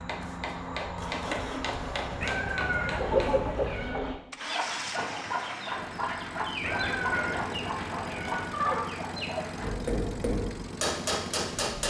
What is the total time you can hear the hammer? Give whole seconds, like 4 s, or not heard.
6 s.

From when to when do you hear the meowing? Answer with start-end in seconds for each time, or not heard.
2.2-4.0, 6.6-8.5.